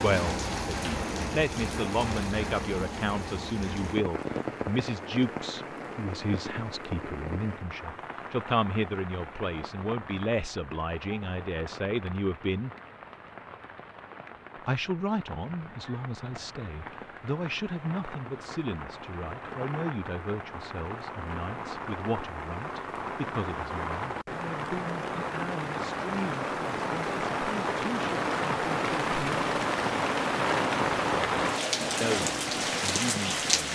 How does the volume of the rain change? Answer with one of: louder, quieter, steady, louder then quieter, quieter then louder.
quieter then louder.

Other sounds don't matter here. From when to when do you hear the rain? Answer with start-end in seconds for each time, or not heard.
0.0-33.7.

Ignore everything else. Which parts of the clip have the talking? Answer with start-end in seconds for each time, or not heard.
0.0-12.7, 14.7-29.4, 32.0-33.7.